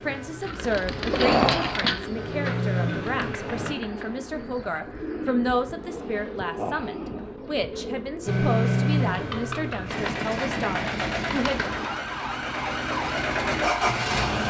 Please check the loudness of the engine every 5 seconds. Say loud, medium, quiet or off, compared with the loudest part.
medium, loud, loud.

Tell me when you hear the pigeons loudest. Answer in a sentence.
The volume of the pigeons peaks at 1 second.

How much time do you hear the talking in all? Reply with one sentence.
The talking can be heard for 12 seconds in total.